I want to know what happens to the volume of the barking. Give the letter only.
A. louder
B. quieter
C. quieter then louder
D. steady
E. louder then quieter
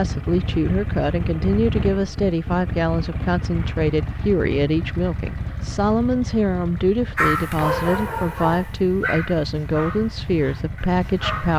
B.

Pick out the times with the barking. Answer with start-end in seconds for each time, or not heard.
7.2-11.5.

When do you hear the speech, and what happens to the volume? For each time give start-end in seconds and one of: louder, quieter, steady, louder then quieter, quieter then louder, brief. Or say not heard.
0.0-11.5 steady.